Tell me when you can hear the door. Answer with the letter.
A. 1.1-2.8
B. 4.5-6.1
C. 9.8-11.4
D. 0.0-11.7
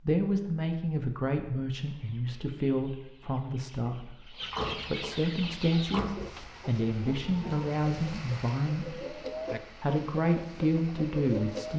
B.